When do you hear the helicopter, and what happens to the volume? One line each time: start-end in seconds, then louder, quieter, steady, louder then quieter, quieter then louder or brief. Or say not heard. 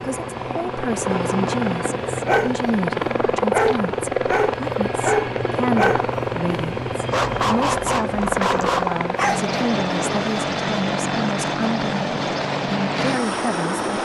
0.0-14.0 steady.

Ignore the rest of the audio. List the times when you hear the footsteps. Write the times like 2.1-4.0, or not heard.
not heard.